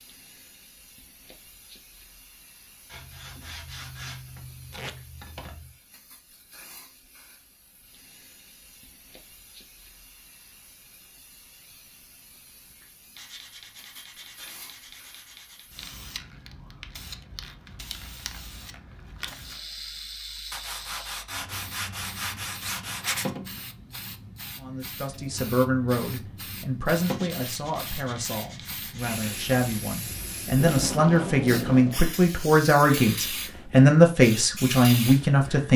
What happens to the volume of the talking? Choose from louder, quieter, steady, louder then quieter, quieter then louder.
quieter then louder.